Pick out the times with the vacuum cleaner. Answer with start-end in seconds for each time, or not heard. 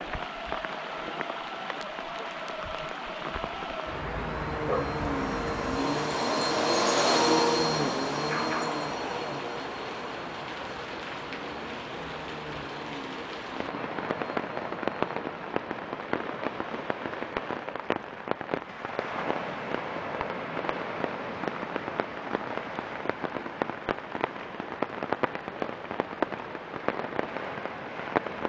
0.0-15.2.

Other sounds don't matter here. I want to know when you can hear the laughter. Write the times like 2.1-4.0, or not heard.
not heard.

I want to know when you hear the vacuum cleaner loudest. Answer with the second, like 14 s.
7 s.